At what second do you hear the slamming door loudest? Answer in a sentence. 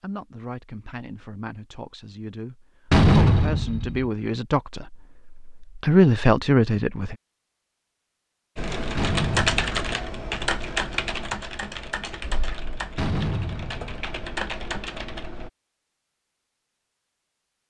The volume of the slamming door peaks at 3 seconds.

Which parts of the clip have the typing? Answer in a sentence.
The typing can be heard from 8.6 to 15.5 s.